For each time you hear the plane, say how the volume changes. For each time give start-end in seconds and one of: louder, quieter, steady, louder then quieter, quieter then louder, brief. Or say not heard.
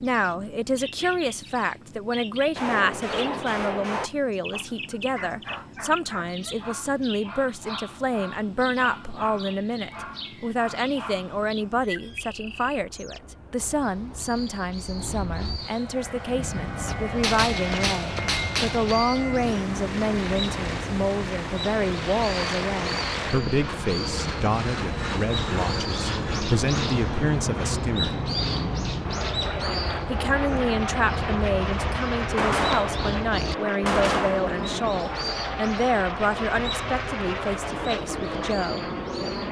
0.0-39.4 louder.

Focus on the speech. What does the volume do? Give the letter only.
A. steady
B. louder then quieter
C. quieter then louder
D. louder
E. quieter
A.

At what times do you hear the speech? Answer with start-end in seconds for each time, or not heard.
0.0-28.2, 30.1-38.9.